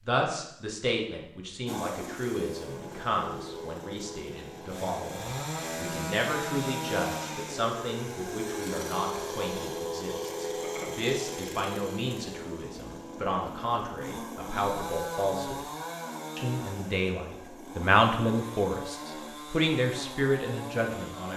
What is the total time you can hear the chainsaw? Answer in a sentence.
The chainsaw can be heard for 20 seconds in total.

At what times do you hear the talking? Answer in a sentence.
The talking can be heard from 0.0 to 15.7 s and from 16.4 to 21.3 s.